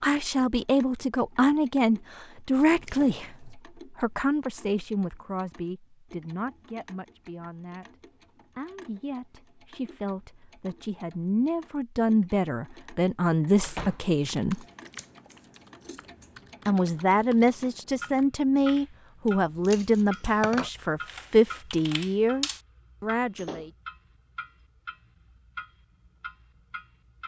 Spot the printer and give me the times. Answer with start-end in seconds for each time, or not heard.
not heard.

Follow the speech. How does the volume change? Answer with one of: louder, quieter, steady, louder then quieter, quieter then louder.
quieter then louder.